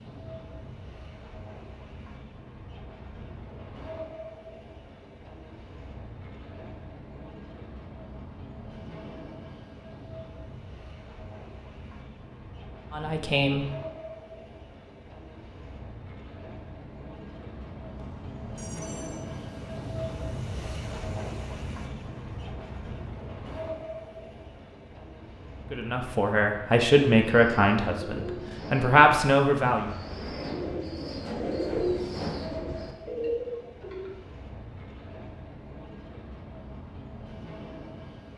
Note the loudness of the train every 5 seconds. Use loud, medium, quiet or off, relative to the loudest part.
medium, medium, medium, loud, loud, medium, medium, medium.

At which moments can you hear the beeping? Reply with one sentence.
The beeping can be heard from 17.9 to 19.2 s.